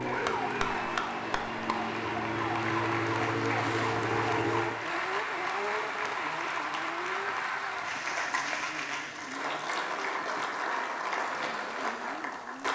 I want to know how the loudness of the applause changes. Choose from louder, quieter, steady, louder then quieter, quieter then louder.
steady.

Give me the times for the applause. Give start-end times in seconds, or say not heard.
0.0-12.6.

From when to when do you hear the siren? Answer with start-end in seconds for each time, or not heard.
0.0-4.7.